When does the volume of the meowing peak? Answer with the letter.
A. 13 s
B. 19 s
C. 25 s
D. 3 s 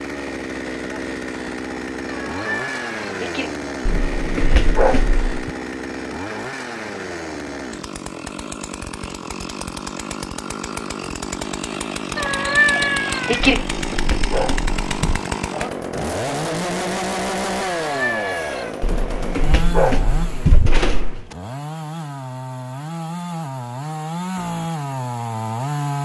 A.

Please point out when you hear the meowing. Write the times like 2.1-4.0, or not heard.
2.0-3.5, 12.2-13.7, 17.6-18.8.